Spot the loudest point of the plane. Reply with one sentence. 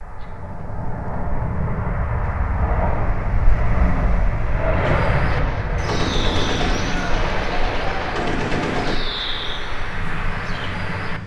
The volume of the plane peaks at 5 seconds.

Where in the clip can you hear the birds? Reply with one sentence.
You can hear the birds from 4.7 to 11.2 s.